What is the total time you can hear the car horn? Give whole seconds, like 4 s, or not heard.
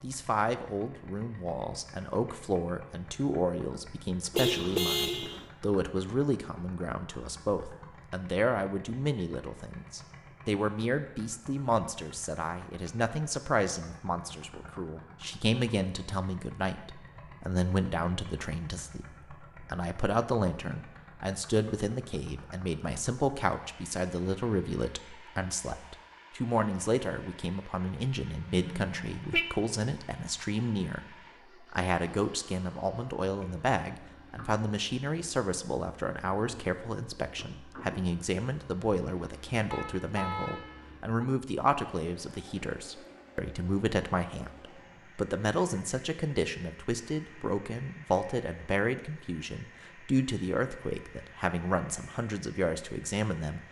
4 s.